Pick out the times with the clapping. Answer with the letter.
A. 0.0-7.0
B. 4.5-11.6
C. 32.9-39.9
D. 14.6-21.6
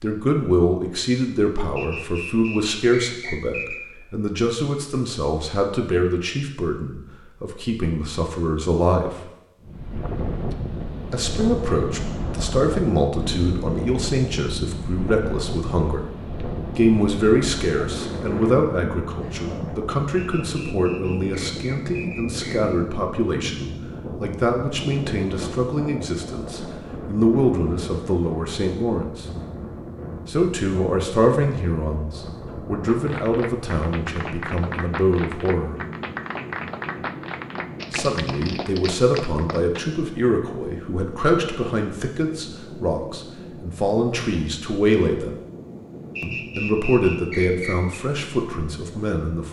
C.